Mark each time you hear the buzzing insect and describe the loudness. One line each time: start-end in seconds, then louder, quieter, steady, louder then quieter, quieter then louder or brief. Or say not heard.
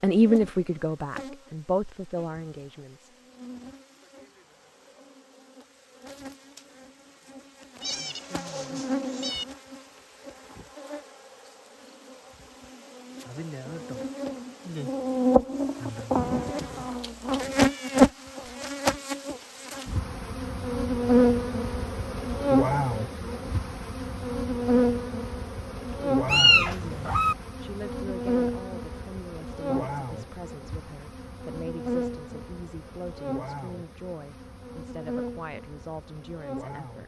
0.0-37.0 louder then quieter.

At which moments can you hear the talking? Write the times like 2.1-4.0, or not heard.
0.0-3.1, 25.9-37.0.